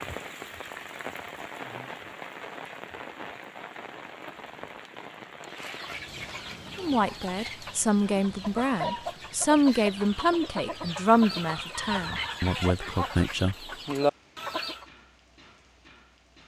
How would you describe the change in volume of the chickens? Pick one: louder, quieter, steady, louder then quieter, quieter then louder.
louder.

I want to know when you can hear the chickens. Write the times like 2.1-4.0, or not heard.
5.4-14.8.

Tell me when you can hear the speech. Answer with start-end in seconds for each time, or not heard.
6.8-13.6.